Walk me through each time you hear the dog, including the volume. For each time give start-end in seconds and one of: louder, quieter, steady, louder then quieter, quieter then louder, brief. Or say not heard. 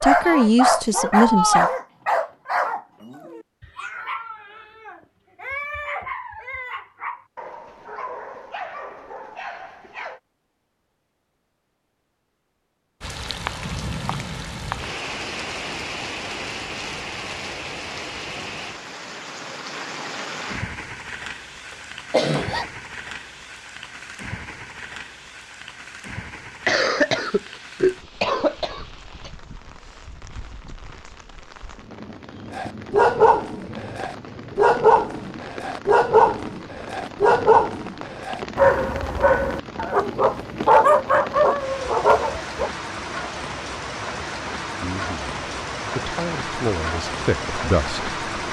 0.0-10.2 quieter
32.5-42.7 steady.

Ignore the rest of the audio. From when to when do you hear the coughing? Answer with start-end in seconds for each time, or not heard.
22.1-22.6, 26.6-29.3.